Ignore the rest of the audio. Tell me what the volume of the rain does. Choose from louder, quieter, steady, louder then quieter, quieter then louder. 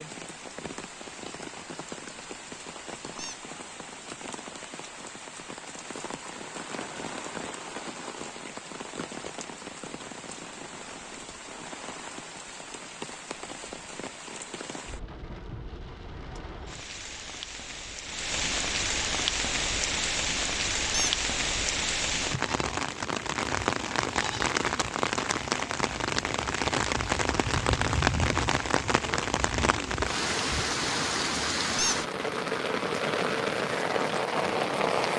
louder.